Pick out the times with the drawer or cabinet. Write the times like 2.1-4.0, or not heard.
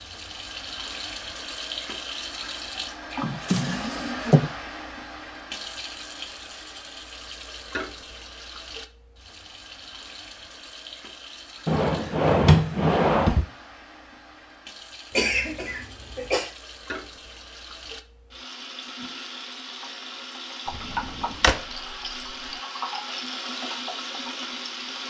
3.1-4.5, 11.7-13.4, 20.7-21.6.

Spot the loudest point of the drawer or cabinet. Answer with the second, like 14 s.
12 s.